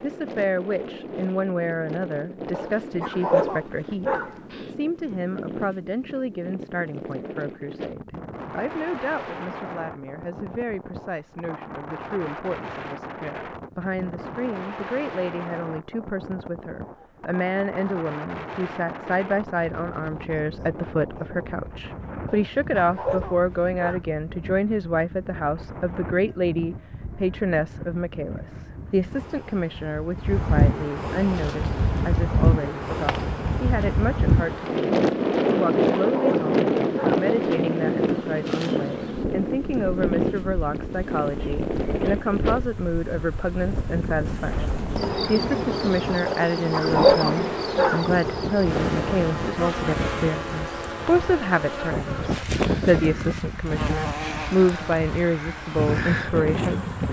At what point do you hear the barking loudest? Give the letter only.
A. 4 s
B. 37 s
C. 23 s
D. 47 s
D.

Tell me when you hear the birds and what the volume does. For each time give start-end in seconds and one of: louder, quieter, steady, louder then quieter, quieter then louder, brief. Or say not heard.
not heard.